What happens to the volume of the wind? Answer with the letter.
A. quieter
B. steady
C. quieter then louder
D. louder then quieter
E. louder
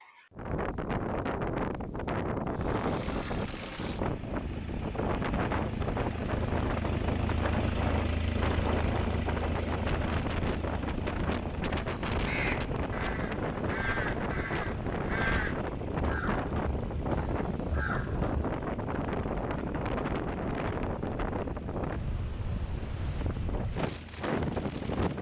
B.